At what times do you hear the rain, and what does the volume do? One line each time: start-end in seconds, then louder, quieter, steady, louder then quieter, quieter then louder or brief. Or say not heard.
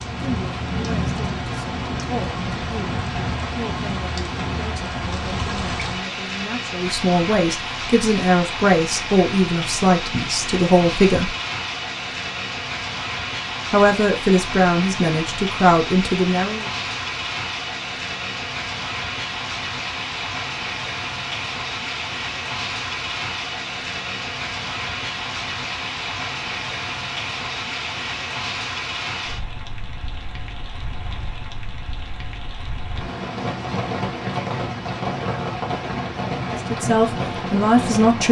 0.0-38.2 steady.